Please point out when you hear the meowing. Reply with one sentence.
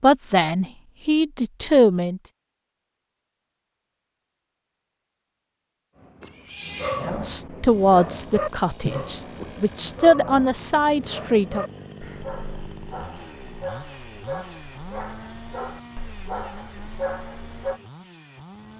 The meowing can be heard from 6.2 to 7.2 s.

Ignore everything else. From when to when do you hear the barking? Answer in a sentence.
You can hear the barking from 6.0 to 17.8 s.